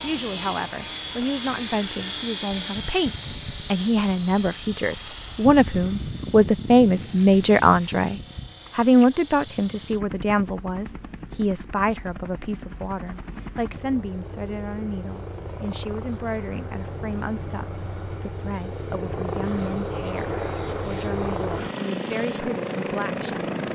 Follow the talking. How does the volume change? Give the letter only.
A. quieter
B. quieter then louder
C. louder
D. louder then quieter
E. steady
D.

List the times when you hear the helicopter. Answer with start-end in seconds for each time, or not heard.
0.0-23.7.